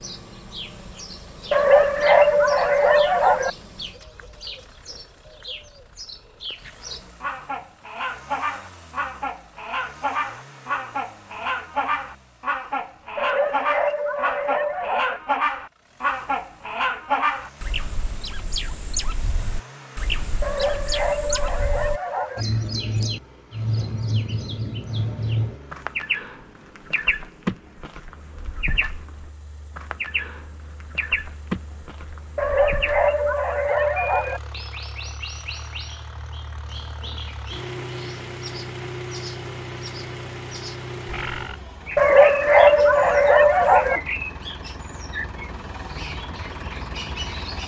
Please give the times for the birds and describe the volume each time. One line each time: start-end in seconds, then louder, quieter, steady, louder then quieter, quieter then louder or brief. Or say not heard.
0.0-47.6 louder then quieter.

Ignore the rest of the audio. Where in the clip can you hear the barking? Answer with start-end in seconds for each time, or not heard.
1.5-3.5, 13.2-15.2, 20.4-22.4, 32.4-34.4, 42.0-44.0.